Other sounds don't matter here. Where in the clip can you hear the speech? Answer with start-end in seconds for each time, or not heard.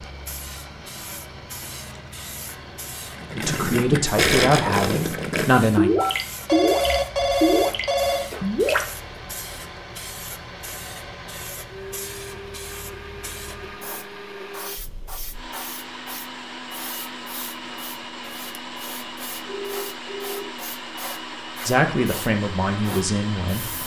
3.4-5.9, 21.6-23.6.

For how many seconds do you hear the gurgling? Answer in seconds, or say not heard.
6 s.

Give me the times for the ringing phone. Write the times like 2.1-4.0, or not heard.
6.0-8.3, 19.4-20.5.